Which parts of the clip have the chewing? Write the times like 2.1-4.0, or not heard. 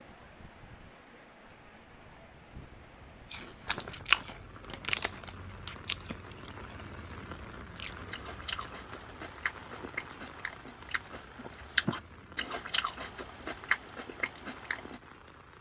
3.3-15.0.